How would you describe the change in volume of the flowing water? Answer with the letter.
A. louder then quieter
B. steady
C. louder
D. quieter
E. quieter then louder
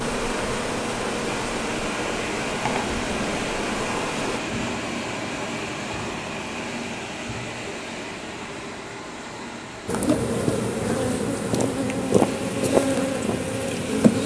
D.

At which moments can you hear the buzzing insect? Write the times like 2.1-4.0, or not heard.
0.0-4.4, 9.8-14.2.